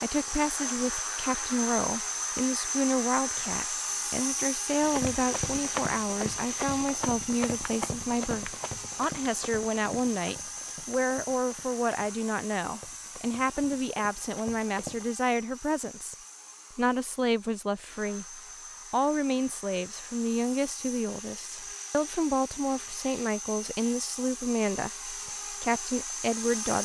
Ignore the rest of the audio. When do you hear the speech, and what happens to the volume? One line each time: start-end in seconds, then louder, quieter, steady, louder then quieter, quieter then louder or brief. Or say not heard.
0.0-26.7 steady.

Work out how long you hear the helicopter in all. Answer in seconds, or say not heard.
27 s.